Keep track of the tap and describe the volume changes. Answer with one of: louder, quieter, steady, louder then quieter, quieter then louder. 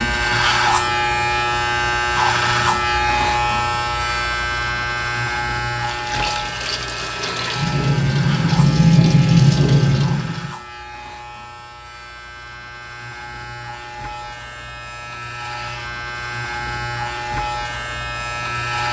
louder.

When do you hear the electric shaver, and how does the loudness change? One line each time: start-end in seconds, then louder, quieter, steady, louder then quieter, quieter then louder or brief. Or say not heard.
0.0-18.8 quieter then louder.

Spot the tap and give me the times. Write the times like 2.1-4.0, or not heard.
5.8-10.6.